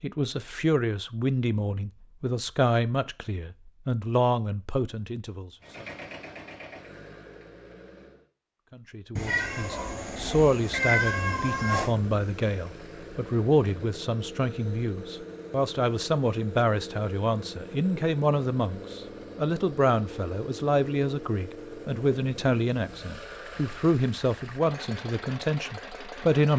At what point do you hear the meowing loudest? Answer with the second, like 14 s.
11 s.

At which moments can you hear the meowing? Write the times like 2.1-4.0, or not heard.
9.2-11.9.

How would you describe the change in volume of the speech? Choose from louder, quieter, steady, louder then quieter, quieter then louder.
steady.